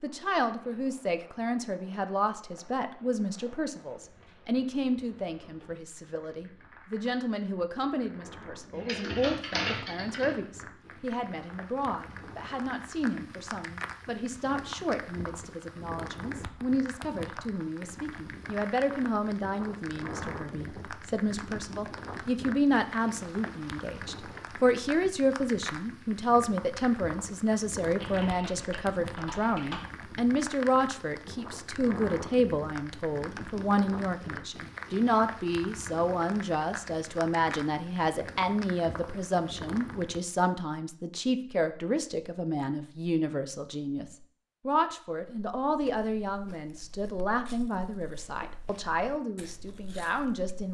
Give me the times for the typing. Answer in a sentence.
The typing can be heard from 8.7 to 10.3 s and from 27.9 to 29.9 s.